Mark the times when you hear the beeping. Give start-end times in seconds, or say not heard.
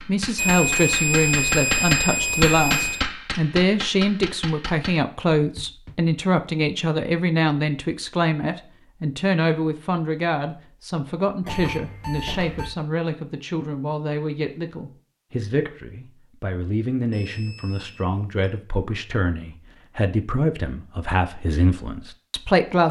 0.3-3.0, 11.4-12.7, 17.1-18.2.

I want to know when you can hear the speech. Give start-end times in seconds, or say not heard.
0.1-22.8.